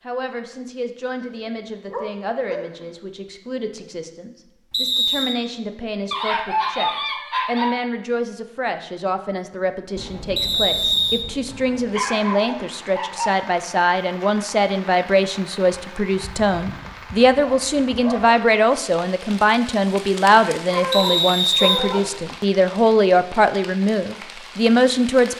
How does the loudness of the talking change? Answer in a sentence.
The loudness of the talking goes up.